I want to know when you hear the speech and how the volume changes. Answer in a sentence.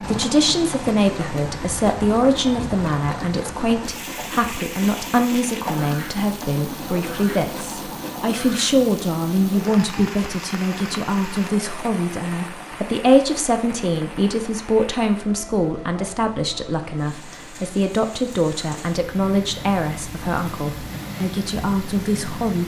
The speech can be heard from 0.0 to 22.6 s, at a steady volume.